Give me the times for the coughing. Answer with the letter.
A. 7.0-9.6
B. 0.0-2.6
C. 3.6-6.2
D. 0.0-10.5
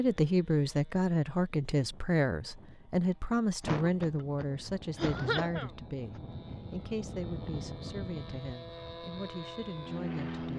C.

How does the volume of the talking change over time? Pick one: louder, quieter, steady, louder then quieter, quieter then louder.
quieter.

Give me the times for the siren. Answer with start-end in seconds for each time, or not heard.
not heard.